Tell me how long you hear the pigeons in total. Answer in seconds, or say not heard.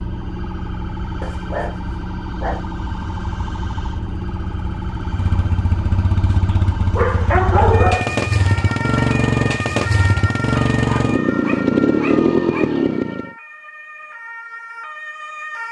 not heard.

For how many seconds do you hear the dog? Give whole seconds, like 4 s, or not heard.
5 s.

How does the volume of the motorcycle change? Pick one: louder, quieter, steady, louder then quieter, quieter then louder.
louder.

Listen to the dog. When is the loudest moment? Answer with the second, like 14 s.
8 s.